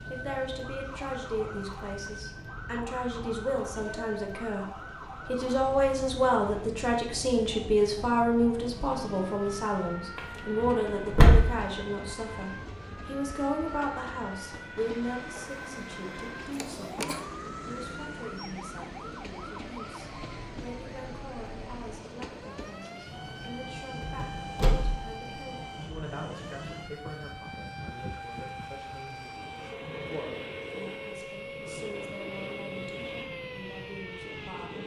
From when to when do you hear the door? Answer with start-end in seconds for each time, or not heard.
10.2-11.6, 24.0-25.1.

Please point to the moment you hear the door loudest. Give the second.
11 s.